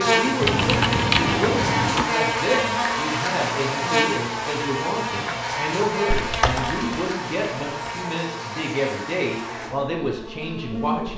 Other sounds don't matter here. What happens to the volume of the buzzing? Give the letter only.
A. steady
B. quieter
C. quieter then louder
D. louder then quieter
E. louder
B.